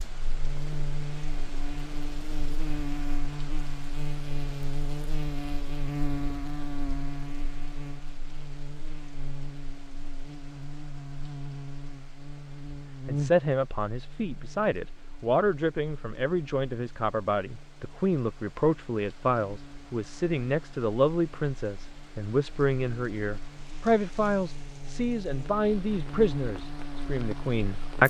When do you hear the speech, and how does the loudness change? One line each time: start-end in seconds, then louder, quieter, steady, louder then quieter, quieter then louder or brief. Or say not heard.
13.1-28.0 steady.